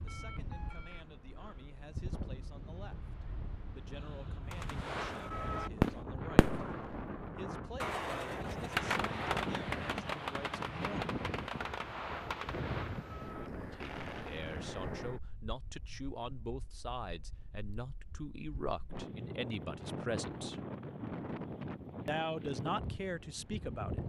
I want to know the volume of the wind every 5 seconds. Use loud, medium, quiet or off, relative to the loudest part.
medium, loud, loud, medium, loud.